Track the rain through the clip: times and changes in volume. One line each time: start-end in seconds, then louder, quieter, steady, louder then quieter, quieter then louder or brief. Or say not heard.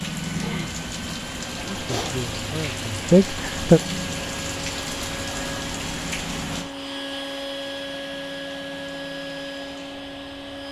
0.0-10.6 quieter.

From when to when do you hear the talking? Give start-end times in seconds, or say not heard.
1.7-3.8.